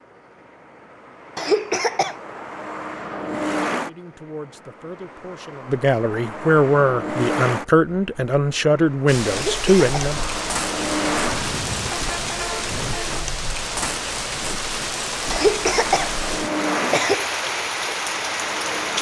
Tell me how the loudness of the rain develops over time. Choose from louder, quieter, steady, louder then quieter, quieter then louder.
steady.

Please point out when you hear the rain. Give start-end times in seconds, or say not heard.
9.1-18.9.